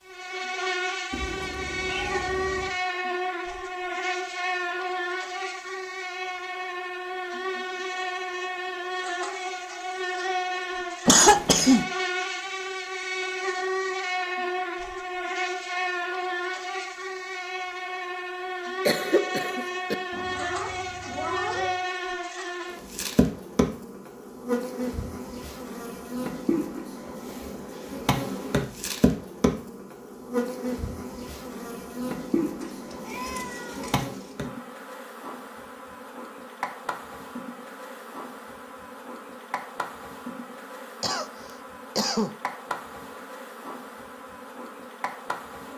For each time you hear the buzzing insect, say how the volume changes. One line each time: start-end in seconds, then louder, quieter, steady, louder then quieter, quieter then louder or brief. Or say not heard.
0.1-45.7 quieter.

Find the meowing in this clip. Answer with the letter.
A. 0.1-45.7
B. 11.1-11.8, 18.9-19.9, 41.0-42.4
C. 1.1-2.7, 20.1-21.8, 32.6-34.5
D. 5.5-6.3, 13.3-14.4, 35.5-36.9
C.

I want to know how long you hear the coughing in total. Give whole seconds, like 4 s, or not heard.
3 s.